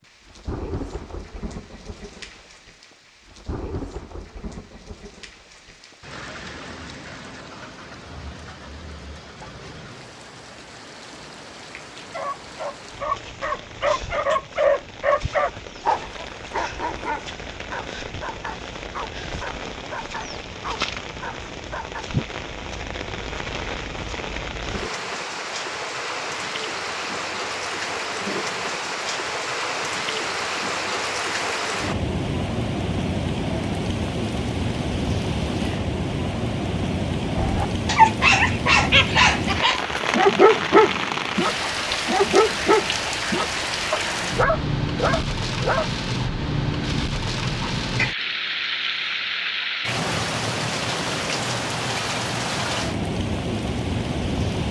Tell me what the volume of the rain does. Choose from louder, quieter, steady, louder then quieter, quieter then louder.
louder.